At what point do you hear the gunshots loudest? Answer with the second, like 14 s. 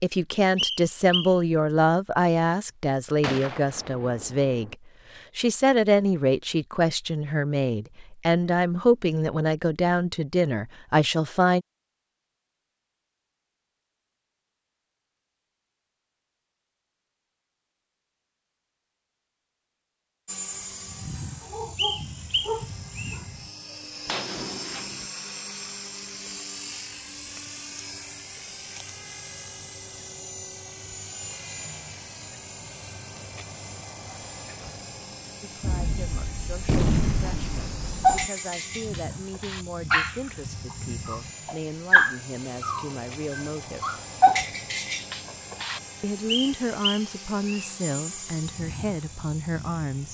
37 s.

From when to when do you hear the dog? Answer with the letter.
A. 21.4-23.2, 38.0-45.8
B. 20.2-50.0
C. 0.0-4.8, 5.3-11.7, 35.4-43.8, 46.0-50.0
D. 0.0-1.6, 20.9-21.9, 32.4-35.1
A.